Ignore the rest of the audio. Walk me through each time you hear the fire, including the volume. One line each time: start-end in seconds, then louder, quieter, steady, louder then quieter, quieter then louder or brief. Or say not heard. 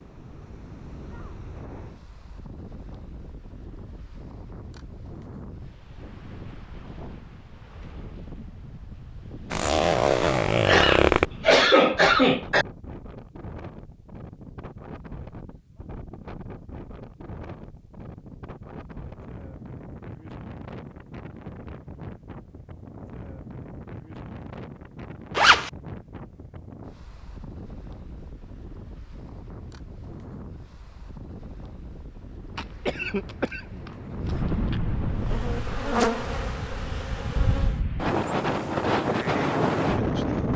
not heard.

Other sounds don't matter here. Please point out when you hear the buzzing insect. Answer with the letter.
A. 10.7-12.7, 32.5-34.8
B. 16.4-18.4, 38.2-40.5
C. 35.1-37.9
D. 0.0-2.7
C.